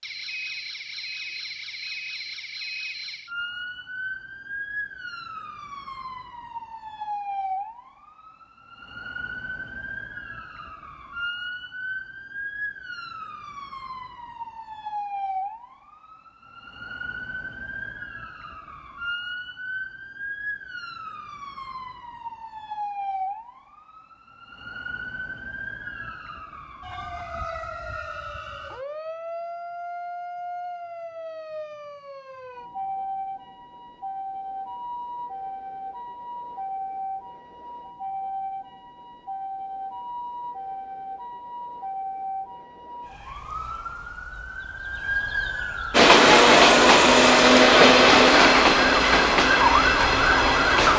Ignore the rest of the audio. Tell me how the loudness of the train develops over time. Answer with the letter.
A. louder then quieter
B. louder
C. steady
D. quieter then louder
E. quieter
E.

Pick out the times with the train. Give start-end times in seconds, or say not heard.
45.9-50.9.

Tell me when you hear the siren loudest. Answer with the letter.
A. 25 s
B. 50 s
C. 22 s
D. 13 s
B.